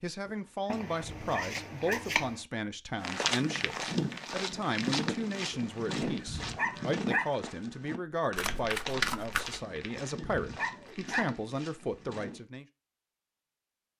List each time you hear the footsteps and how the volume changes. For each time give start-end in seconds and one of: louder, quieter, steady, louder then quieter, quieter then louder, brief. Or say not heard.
3.0-12.4 quieter.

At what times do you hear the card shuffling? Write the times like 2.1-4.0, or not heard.
0.7-2.4, 8.3-9.6.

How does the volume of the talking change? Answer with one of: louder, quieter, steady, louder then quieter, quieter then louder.
steady.